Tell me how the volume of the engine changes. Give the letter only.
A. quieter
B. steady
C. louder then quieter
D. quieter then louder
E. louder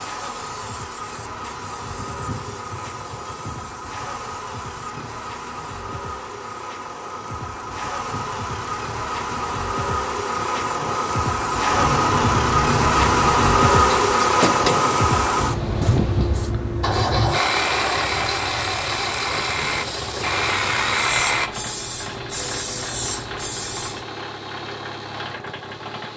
C.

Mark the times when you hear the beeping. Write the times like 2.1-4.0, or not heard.
not heard.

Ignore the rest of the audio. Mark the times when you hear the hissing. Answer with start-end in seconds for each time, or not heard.
0.0-24.1.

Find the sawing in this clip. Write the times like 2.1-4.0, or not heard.
17.3-21.5.